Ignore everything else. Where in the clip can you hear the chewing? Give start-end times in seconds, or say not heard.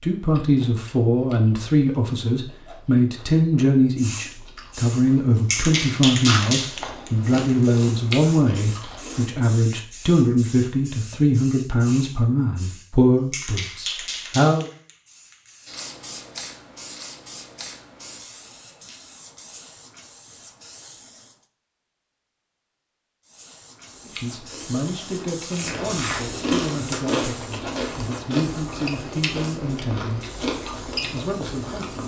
0.1-9.4, 23.8-32.0.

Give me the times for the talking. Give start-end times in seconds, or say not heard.
0.0-14.7, 24.1-32.0.